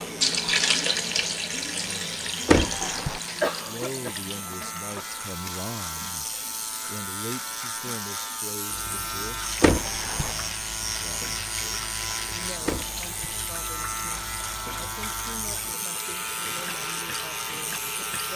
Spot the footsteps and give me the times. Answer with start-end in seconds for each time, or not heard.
not heard.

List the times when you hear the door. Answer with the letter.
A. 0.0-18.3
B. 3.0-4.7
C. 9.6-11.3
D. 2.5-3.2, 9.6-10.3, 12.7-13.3
D.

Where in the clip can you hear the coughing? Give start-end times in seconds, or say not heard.
3.0-4.7.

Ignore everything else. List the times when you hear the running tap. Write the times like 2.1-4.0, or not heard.
0.0-18.3.